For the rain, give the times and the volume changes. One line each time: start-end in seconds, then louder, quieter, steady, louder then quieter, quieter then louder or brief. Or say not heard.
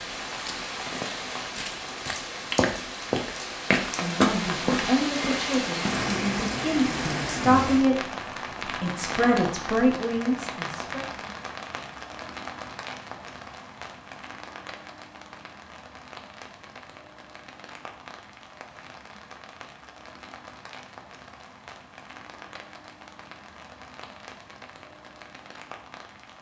0.0-26.3 quieter.